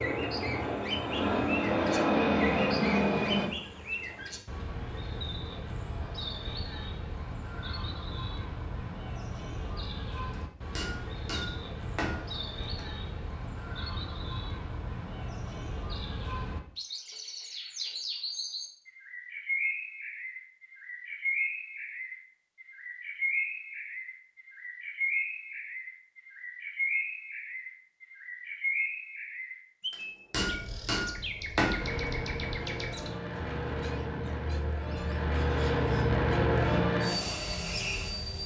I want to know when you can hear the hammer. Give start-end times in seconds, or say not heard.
10.3-12.8, 29.9-31.9.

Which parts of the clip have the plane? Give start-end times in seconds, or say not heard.
0.0-3.5, 31.8-38.4.